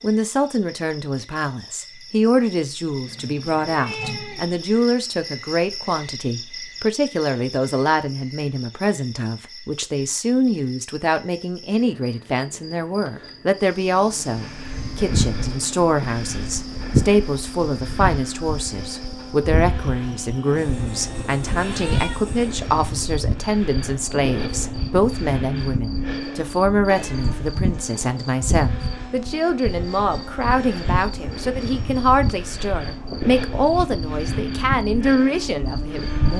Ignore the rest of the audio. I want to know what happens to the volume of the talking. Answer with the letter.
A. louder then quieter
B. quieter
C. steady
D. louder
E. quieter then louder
C.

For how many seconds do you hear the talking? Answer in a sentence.
You can hear the talking for 36 seconds altogether.